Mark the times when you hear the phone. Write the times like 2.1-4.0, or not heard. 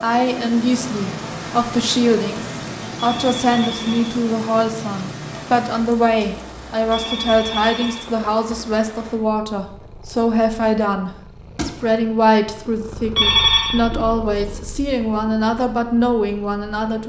3.0-4.2, 6.9-8.1, 13.2-13.8.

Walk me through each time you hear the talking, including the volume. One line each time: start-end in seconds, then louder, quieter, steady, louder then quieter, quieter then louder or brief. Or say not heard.
0.0-17.0 steady.